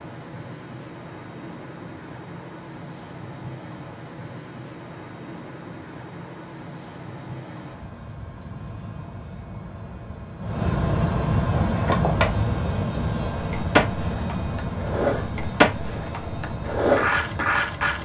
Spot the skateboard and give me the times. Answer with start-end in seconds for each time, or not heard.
11.5-18.0.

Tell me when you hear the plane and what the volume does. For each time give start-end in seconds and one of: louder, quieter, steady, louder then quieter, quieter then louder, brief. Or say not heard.
0.0-18.0 louder then quieter.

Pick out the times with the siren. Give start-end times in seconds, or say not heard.
not heard.